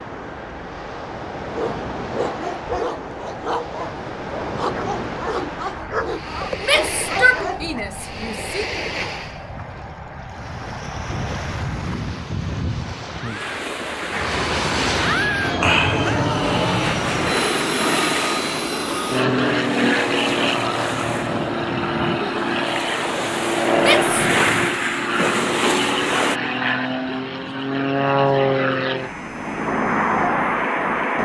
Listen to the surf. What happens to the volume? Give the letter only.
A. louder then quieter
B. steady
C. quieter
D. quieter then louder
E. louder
E.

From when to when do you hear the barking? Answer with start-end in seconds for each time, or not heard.
1.4-7.8.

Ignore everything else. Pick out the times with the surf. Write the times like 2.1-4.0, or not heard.
0.0-26.4.